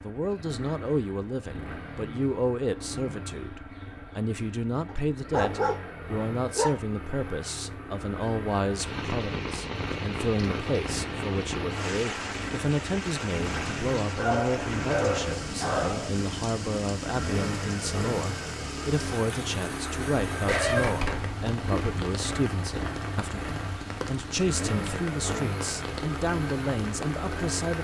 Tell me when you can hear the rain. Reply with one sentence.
You can hear the rain from 8.7 to 27.7 s.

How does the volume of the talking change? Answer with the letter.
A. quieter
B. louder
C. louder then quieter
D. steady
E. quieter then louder
D.